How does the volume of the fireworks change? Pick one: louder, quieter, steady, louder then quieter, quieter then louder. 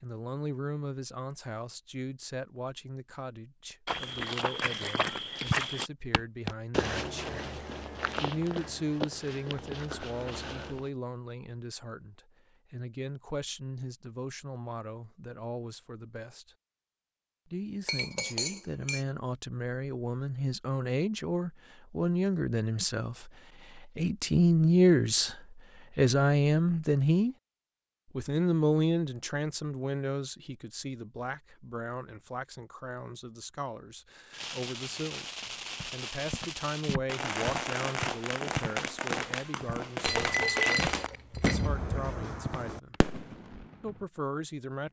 louder then quieter.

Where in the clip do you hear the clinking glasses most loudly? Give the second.
41 s.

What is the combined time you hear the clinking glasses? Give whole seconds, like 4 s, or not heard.
3 s.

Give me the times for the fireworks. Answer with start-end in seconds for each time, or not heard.
34.3-44.0.